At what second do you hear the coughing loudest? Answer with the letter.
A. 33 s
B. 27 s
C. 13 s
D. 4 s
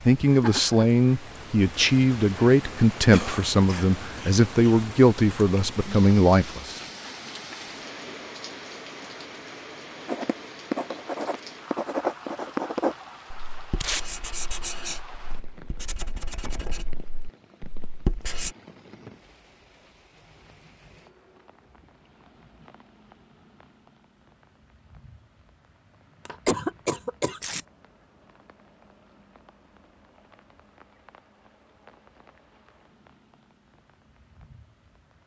B.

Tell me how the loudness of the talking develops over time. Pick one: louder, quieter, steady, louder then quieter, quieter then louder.
steady.